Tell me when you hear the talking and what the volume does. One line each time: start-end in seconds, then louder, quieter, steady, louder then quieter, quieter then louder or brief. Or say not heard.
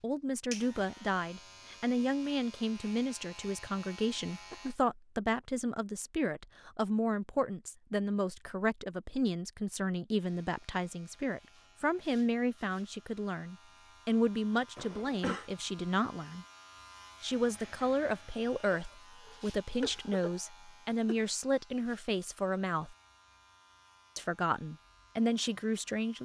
0.0-16.4 steady
17.2-22.9 steady
24.1-26.2 brief.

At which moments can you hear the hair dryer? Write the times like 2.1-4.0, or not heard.
not heard.